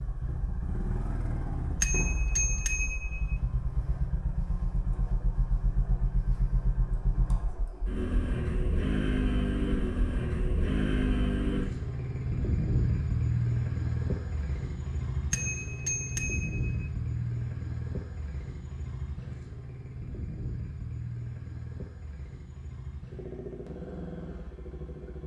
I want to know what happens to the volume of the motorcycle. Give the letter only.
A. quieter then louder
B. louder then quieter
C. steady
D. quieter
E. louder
B.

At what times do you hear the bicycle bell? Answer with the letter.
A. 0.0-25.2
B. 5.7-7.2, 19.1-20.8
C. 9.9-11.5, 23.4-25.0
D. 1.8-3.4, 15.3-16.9
D.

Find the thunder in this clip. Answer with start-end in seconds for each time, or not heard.
not heard.